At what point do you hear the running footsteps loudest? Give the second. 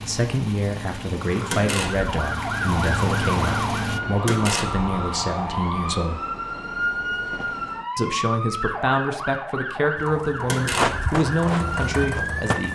11 s.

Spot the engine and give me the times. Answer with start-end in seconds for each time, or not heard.
0.0-4.0, 9.9-12.7.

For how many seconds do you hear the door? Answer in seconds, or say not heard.
2 s.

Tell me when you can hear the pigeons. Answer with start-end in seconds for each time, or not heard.
not heard.